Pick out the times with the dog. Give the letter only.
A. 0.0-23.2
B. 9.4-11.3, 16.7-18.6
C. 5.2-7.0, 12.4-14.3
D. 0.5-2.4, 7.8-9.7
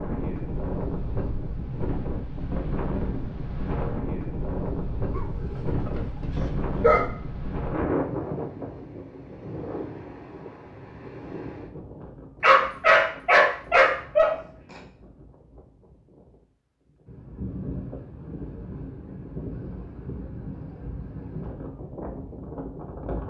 C.